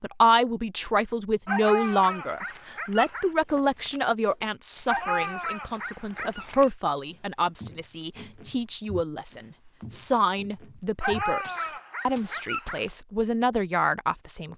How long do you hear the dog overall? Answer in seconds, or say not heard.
5 s.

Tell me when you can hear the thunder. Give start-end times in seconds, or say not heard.
not heard.